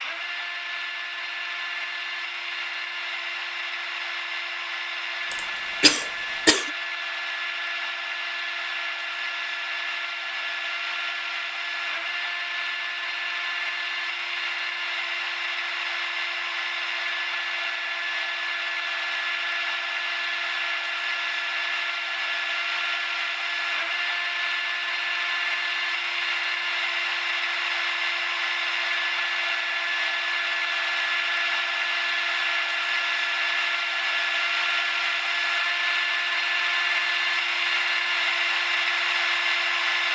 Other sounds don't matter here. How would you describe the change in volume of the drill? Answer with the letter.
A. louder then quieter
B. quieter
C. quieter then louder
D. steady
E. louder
E.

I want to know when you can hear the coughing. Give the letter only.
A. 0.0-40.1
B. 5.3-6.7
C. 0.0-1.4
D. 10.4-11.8
B.